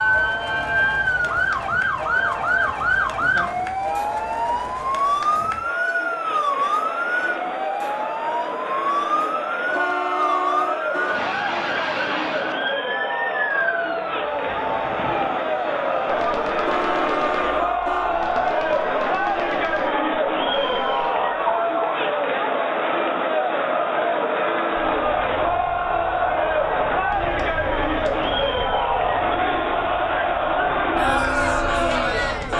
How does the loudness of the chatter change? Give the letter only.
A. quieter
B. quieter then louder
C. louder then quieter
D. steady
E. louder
E.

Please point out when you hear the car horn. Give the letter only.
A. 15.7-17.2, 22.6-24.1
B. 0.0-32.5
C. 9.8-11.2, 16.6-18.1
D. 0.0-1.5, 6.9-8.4
C.